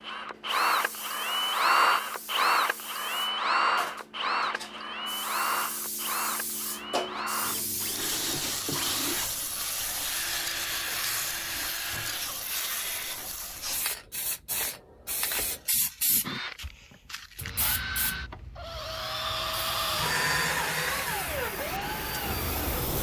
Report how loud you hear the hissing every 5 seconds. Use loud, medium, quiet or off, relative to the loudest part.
medium, loud, loud, loud, loud.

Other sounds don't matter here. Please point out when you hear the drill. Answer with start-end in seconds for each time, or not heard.
0.0-13.2, 16.2-22.9.